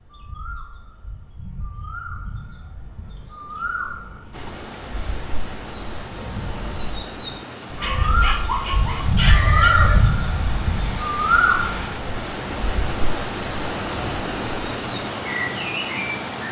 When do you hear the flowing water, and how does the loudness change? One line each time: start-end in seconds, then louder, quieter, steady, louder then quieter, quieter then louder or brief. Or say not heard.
4.3-16.4 louder.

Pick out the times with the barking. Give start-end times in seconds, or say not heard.
7.8-9.7.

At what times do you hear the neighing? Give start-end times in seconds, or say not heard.
9.2-10.1.